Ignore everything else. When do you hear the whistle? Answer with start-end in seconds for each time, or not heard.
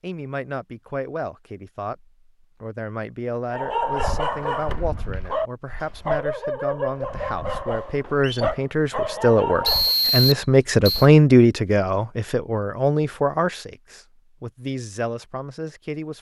9.7-11.1.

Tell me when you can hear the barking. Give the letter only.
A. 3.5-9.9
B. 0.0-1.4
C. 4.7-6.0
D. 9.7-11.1
A.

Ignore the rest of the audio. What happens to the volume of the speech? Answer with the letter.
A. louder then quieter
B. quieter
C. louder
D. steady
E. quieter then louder
A.